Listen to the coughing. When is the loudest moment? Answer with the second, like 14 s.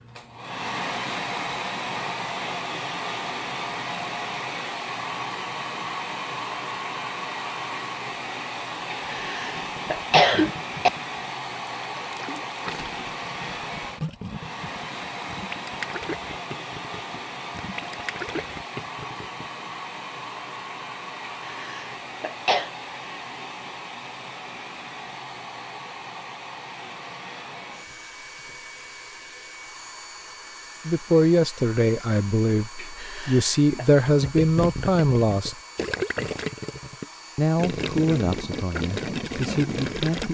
10 s.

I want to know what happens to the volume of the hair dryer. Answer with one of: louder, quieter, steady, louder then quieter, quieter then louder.
quieter.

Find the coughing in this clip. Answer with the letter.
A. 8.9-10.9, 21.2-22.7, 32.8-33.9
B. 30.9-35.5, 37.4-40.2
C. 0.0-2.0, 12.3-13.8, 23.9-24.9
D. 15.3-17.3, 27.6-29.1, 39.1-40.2
A.